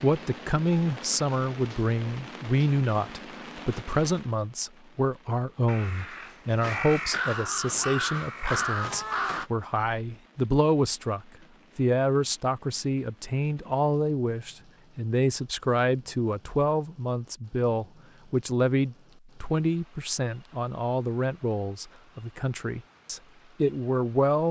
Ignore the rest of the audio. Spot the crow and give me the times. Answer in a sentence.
The crow can be heard from 5.7 to 9.5 s.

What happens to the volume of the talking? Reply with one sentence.
The loudness of the talking stays about the same.